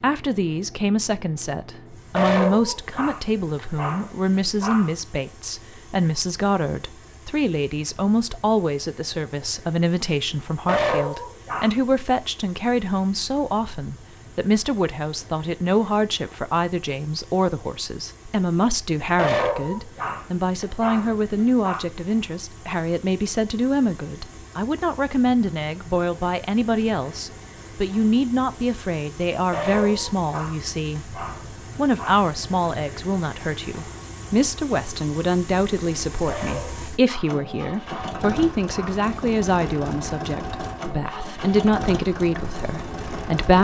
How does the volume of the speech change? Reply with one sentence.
The loudness of the speech stays about the same.